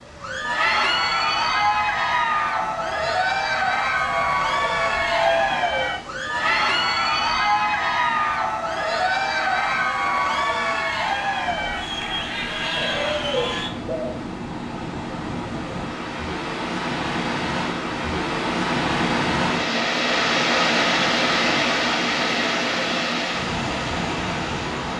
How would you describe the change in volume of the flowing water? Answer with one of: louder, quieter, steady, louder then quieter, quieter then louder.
louder.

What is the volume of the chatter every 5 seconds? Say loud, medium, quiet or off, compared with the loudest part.
loud, loud, loud, off, off.